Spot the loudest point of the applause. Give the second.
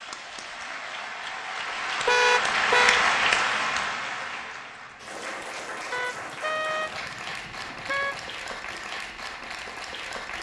3 s.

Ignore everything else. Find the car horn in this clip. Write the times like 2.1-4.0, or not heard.
2.0-3.0, 5.9-8.3.